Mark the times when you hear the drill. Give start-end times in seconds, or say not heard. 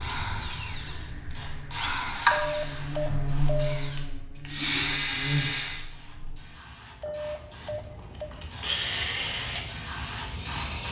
0.0-5.8, 7.6-10.8.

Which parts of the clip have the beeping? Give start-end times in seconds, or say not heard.
2.3-3.8, 7.0-8.3.